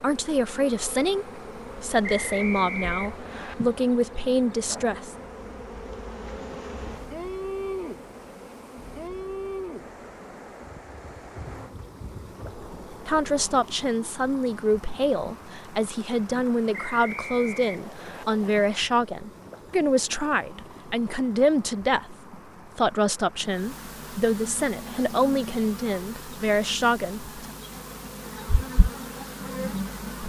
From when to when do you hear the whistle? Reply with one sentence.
You can hear the whistle from 2.0 to 3.5 s and from 16.7 to 18.2 s.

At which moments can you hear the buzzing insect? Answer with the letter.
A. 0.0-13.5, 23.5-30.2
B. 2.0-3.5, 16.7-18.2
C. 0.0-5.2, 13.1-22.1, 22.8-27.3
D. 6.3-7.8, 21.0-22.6
A.